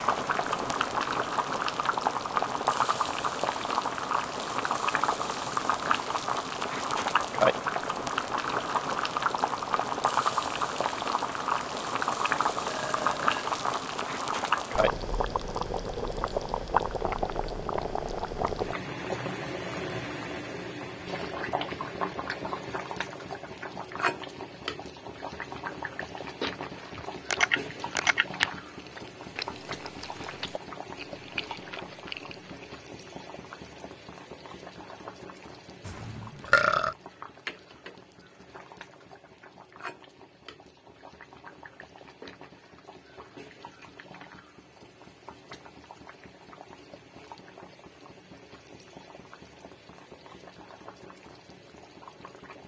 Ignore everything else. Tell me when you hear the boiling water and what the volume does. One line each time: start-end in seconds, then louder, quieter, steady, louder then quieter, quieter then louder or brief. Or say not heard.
0.0-52.6 quieter.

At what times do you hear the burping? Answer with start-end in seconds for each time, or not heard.
12.7-13.5, 27.3-28.2, 35.9-37.0.